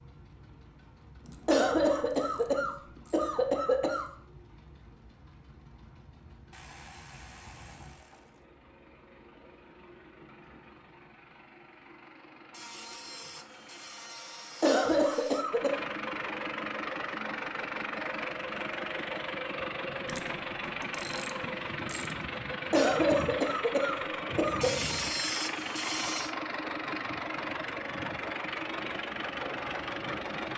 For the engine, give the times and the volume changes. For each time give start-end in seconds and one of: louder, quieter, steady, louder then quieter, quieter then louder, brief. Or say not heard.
0.0-30.5 louder.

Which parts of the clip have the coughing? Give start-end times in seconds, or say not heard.
1.4-4.0, 14.6-15.7, 22.7-24.7.